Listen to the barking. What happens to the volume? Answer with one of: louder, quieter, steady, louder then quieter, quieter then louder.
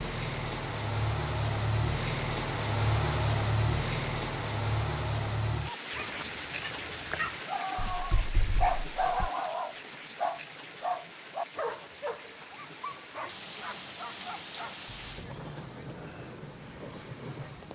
louder then quieter.